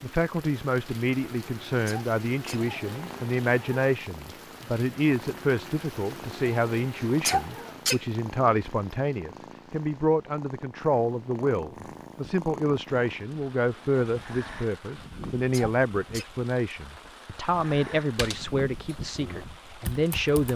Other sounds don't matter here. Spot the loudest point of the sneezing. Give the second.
7 s.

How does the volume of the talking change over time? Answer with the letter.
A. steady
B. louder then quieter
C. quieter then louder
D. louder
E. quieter
A.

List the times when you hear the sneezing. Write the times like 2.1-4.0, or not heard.
1.9-2.6, 7.0-8.0, 15.3-16.3.